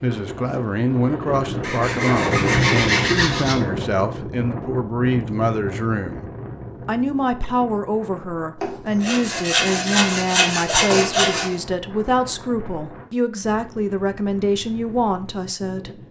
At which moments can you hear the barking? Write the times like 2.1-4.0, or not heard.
not heard.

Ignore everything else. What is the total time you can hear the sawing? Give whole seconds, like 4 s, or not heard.
5 s.